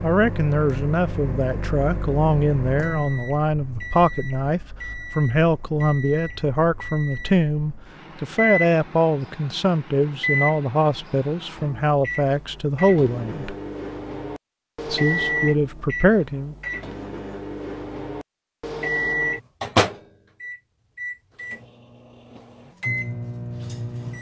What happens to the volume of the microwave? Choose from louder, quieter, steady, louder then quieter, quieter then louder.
louder.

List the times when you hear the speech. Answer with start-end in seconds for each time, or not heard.
0.0-13.6, 14.8-16.6.